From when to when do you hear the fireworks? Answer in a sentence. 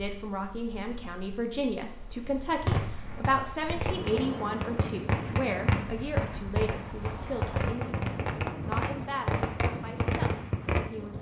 You can hear the fireworks from 2.6 to 10.9 s.